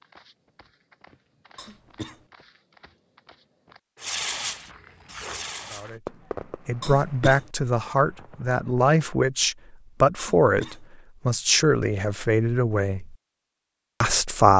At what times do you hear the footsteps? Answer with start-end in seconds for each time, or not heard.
0.0-6.0.